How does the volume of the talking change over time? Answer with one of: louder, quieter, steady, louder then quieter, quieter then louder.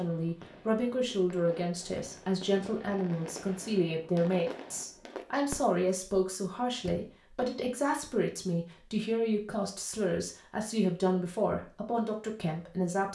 steady.